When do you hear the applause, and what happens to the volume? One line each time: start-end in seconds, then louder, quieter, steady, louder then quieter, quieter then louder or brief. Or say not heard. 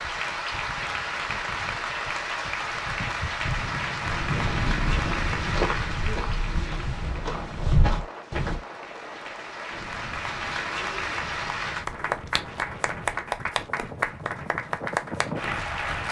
0.0-16.0 quieter then louder.